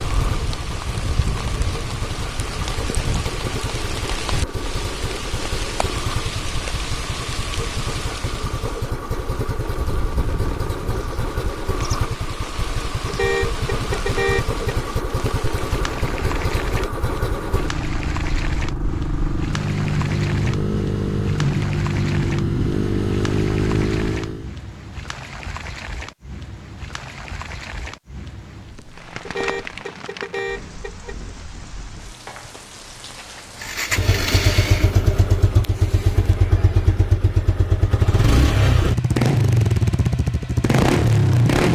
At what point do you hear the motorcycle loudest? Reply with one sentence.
The volume of the motorcycle peaks at 41 seconds.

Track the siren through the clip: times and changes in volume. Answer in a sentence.
You can't hear the siren here.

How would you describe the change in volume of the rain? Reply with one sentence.
The volume of the rain goes down.